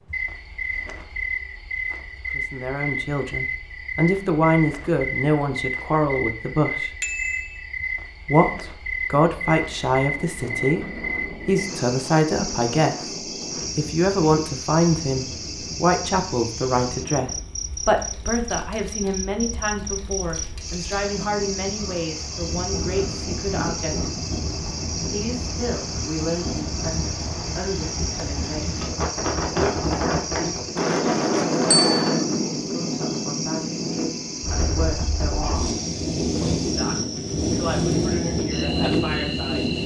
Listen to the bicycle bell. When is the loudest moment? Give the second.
32 s.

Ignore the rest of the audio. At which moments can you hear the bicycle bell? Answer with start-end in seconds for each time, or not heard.
7.0-7.7, 31.7-32.2.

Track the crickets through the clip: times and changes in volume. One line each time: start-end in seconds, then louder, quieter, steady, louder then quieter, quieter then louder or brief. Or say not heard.
0.0-39.8 steady.